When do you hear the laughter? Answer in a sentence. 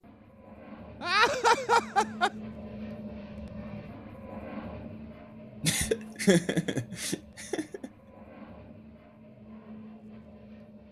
The laughter can be heard from 1.0 to 2.3 s and from 5.6 to 7.9 s.